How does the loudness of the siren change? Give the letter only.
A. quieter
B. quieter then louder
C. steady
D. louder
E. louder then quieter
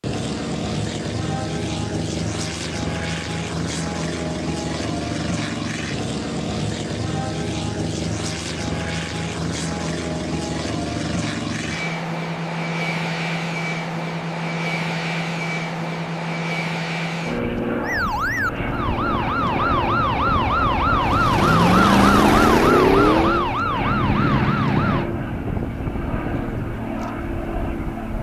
E.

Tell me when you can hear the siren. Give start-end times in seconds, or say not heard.
17.8-25.1.